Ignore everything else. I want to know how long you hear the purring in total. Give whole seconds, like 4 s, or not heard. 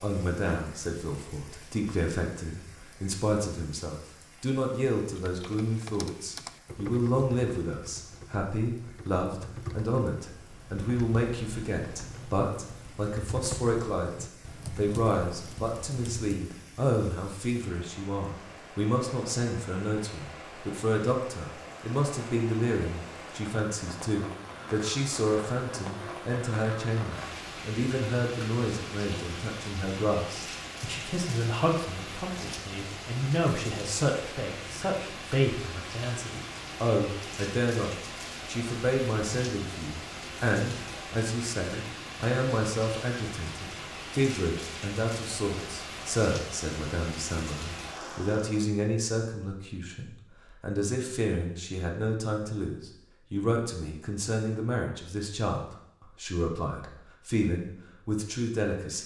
not heard.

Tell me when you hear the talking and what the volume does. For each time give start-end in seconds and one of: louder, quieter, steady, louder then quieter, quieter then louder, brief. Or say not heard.
0.0-59.0 steady.